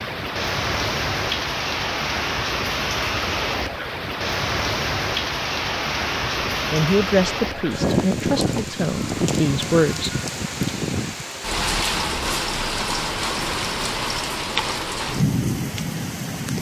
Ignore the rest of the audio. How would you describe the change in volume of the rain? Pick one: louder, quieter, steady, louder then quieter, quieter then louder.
steady.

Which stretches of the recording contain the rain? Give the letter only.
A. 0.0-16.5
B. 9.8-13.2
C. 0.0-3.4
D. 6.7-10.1
A.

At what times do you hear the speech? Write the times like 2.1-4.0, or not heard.
6.7-10.1.